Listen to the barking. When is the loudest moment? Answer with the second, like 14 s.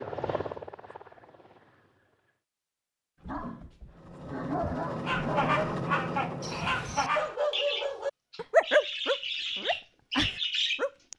9 s.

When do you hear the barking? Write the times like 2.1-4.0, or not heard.
3.2-10.9.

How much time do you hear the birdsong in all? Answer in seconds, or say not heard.
6 s.